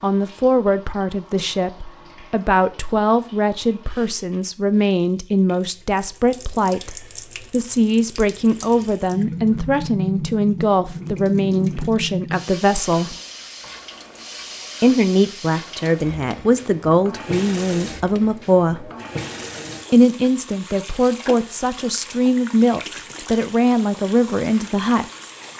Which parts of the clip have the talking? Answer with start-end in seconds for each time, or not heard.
0.0-13.2, 14.8-18.9, 19.9-25.1.